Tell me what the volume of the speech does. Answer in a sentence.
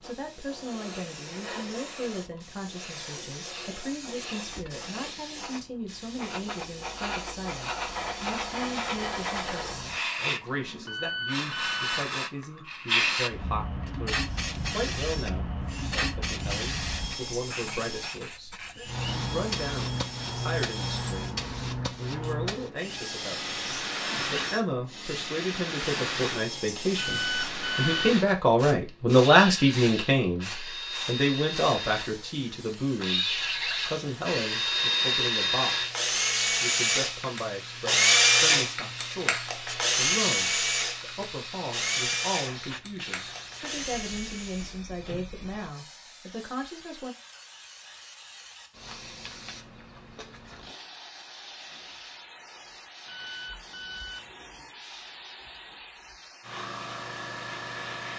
The loudness of the speech goes up, then down.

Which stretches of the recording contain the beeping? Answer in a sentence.
The beeping can be heard from 10.8 to 12.0 s, from 26.9 to 28.1 s and from 53.0 to 54.4 s.